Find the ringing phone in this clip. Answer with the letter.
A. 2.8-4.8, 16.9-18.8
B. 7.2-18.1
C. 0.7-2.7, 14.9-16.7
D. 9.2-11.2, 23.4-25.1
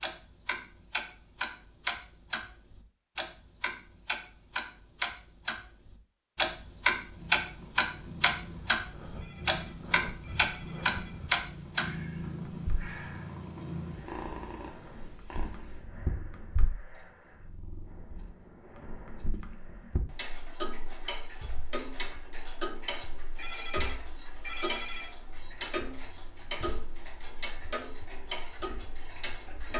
D.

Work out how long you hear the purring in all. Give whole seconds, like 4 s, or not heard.
11 s.